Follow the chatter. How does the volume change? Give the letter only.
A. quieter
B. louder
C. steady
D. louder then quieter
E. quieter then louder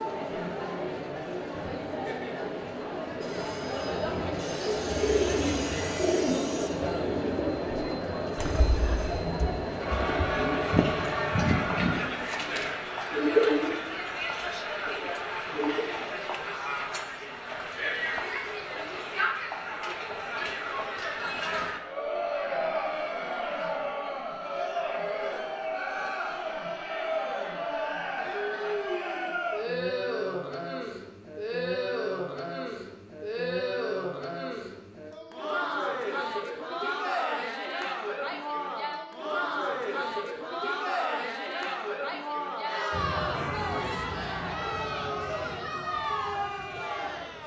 C.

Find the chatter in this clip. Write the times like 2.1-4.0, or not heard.
0.0-47.4.